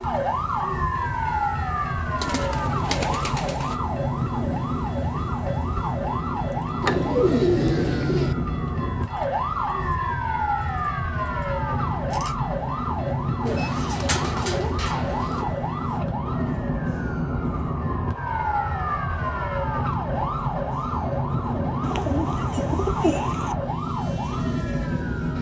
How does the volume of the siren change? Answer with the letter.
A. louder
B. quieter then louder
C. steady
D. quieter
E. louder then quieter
C.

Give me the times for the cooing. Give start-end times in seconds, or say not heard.
2.2-3.8, 6.8-8.3, 13.4-15.4, 21.8-23.6.